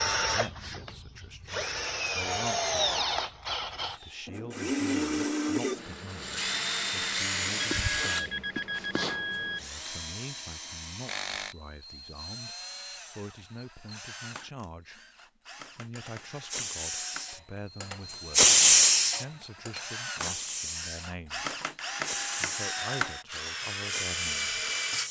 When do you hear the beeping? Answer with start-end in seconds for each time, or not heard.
7.6-9.6.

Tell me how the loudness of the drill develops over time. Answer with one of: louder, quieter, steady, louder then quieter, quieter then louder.
quieter then louder.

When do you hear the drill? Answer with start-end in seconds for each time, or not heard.
0.0-25.0.